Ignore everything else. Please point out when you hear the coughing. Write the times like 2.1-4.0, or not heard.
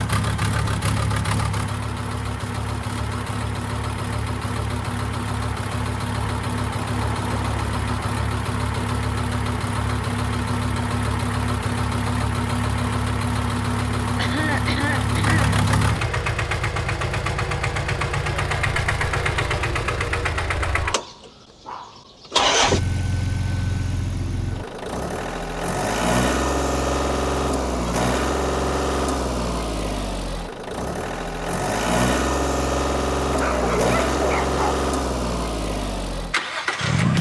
14.2-15.6.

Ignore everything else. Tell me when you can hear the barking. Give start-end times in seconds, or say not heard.
33.3-34.9.